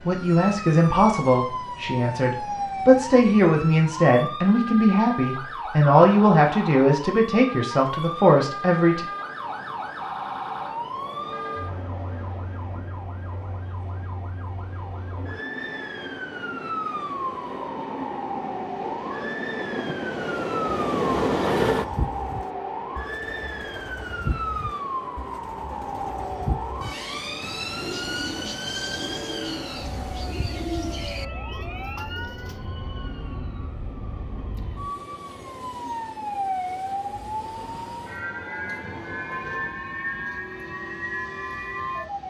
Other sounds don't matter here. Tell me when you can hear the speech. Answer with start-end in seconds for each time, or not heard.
0.1-9.1.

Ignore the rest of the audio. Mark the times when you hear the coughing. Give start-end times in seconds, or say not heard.
not heard.